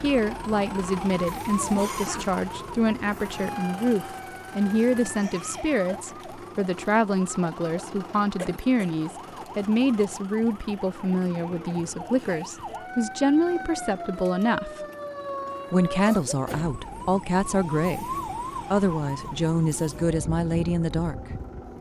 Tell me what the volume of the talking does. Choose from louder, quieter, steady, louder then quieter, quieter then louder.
steady.